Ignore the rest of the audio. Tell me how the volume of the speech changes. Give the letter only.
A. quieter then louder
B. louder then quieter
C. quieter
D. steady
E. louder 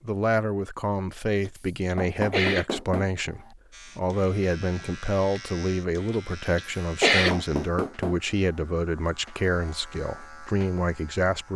D.